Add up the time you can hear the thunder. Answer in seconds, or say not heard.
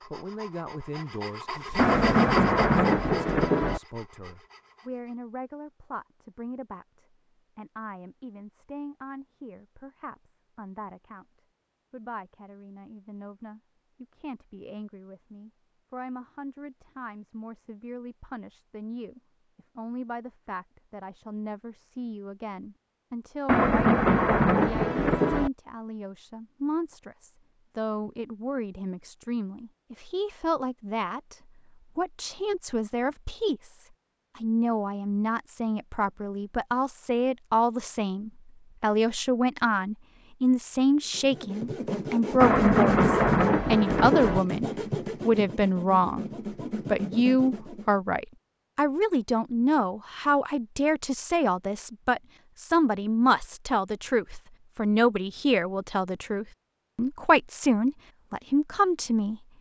6 s.